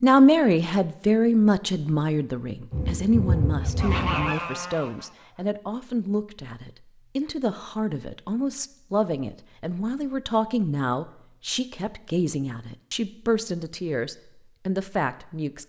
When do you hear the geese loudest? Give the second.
4 s.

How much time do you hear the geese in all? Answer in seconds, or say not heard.
2 s.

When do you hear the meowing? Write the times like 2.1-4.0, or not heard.
not heard.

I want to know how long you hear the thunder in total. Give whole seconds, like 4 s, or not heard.
2 s.